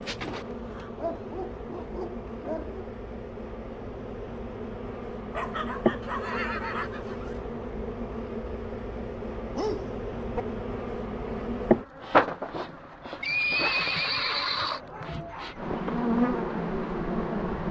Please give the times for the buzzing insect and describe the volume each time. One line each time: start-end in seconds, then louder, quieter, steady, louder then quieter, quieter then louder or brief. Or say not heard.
0.0-17.6 louder.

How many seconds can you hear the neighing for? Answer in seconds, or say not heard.
4 s.